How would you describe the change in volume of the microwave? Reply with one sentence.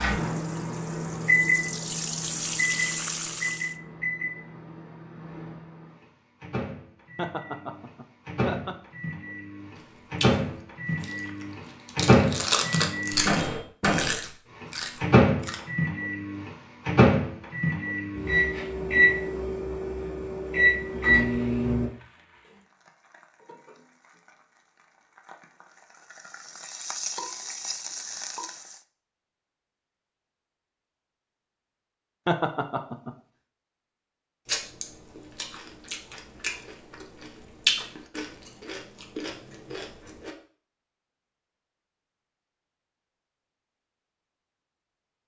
The loudness of the microwave goes down, then up.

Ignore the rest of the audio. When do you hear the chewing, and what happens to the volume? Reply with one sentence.
You can hear the chewing from 9.8 to 15.6 s, getting louder then quieter; and from 34.5 to 40.4 s, getting louder then quieter.